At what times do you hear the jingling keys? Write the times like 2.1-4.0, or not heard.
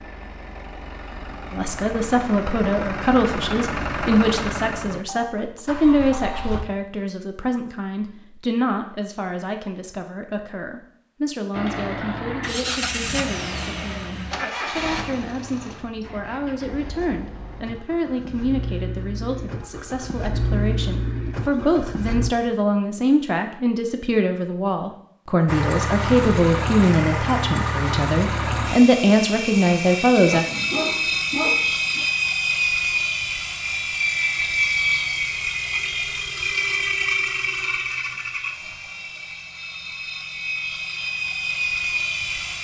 not heard.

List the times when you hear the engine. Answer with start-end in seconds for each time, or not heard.
0.0-6.7, 11.5-22.3, 25.4-42.6.